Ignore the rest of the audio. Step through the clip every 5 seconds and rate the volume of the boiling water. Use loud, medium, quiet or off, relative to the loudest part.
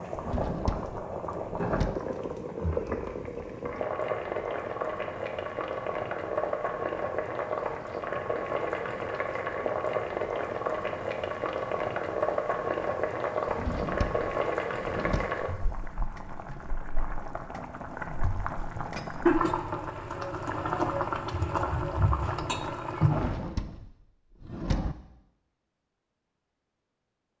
loud, loud, loud, loud, loud, off.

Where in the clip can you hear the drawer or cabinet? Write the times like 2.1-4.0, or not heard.
0.1-2.0, 13.4-15.3, 23.1-24.9.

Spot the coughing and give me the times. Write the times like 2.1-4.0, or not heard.
not heard.